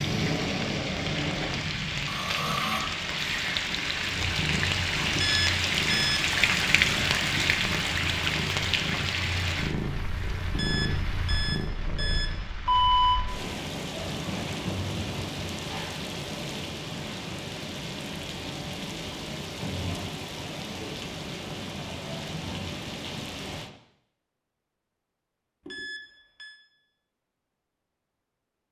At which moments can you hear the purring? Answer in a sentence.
You can hear the purring from 4.0 to 12.4 s.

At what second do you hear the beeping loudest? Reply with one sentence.
The volume of the beeping peaks at 13 seconds.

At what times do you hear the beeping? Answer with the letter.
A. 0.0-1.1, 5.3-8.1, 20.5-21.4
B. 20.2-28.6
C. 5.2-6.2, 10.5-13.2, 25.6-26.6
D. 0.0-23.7
C.